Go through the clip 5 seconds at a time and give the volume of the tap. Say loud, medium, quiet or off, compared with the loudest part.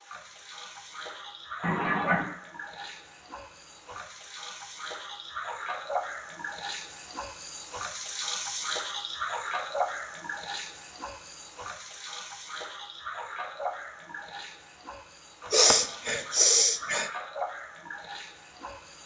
medium, loud, medium, medium.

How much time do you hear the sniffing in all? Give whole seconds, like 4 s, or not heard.
2 s.